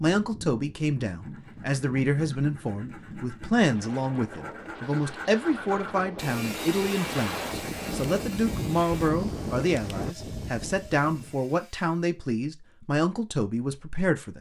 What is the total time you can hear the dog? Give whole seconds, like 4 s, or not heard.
not heard.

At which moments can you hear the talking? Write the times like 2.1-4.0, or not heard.
0.0-14.3.